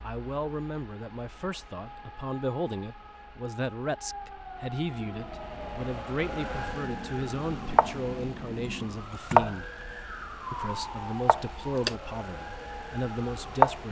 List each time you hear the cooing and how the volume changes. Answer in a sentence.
You can't hear the cooing here.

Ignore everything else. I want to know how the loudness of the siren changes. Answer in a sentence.
The loudness of the siren goes up, then down.